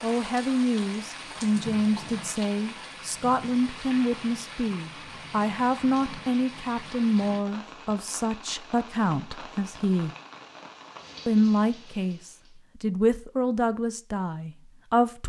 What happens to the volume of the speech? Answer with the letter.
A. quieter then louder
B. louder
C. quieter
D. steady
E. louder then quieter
D.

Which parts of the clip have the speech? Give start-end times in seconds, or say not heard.
0.0-10.1, 11.2-15.2.